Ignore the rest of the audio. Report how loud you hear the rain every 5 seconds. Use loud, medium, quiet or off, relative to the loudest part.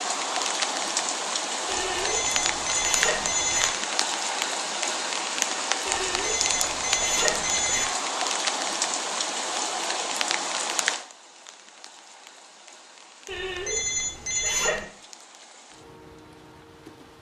loud, loud, medium, quiet.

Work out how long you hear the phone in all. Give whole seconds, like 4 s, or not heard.
6 s.